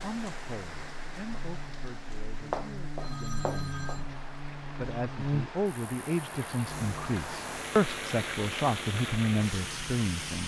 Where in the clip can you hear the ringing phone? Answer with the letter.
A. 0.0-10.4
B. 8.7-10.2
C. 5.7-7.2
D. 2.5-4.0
D.